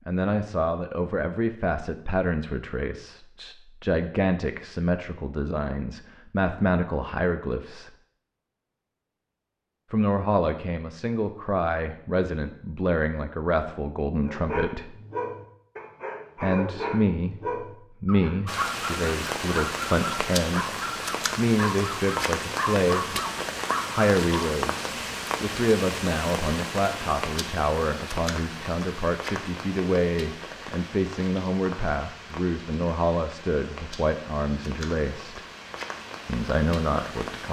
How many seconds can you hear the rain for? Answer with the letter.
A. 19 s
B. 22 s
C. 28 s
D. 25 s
A.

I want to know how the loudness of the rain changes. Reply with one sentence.
The loudness of the rain goes down.